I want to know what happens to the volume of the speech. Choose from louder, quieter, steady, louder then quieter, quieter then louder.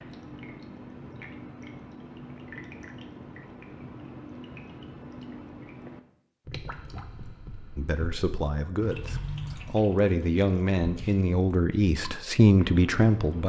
louder.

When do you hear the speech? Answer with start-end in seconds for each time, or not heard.
7.8-13.4.